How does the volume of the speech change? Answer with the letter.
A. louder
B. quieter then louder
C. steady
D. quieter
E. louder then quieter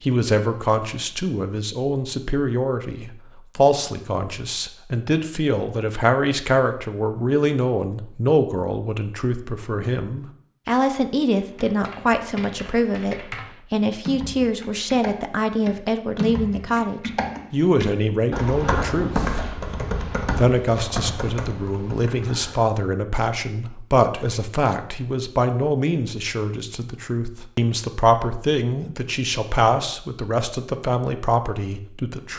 C.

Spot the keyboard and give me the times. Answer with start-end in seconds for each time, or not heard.
11.4-22.6.